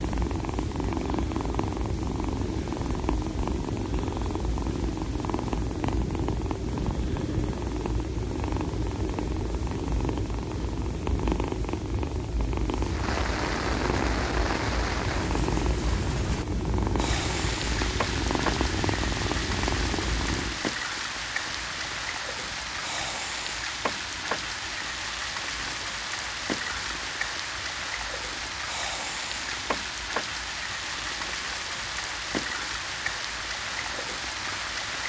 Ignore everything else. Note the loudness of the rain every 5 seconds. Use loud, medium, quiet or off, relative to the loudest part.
off, off, loud, loud, loud, loud, loud.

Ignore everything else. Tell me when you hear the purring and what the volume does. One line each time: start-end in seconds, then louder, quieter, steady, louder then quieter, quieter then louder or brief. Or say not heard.
0.0-35.0 quieter.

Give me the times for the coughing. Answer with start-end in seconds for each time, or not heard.
not heard.